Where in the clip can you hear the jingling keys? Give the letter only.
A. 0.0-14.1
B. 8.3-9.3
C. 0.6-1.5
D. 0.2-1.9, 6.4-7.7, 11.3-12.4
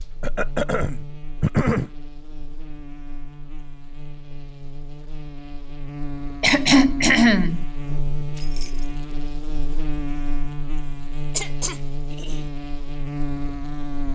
B.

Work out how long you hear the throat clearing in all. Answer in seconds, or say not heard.
4 s.